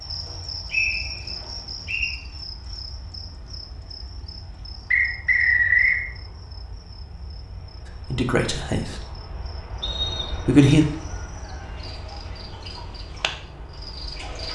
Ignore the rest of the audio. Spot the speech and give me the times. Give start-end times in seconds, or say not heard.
8.1-9.0, 10.3-10.8.